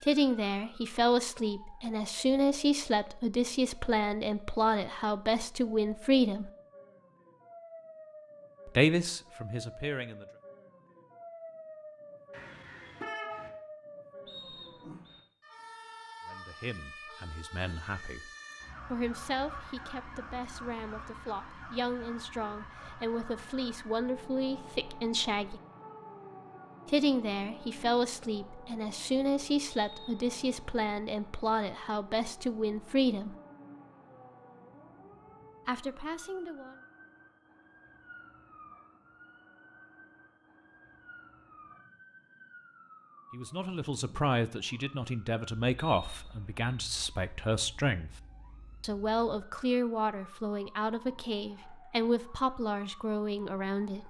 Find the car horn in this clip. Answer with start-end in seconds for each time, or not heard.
12.3-13.5.